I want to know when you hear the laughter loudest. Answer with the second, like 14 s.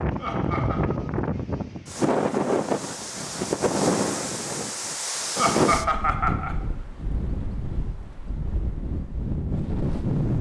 6 s.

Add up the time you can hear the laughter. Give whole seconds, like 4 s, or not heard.
2 s.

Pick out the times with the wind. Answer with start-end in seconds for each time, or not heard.
0.0-10.3.